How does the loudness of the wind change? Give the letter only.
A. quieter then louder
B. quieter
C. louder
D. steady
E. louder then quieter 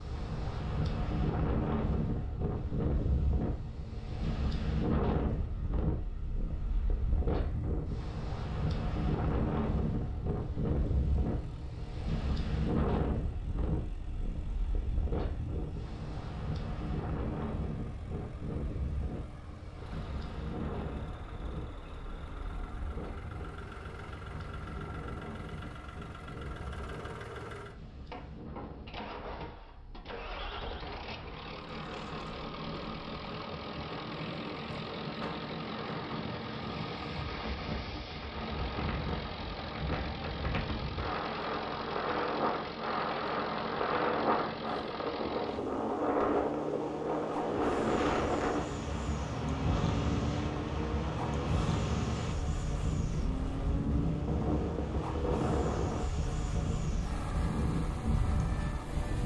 A.